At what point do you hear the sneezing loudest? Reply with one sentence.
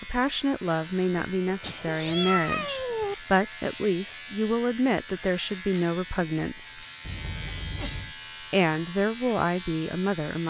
The volume of the sneezing peaks at 2 seconds.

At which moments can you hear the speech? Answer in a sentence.
You can hear the speech from 0.0 to 6.8 s and from 8.5 to 10.4 s.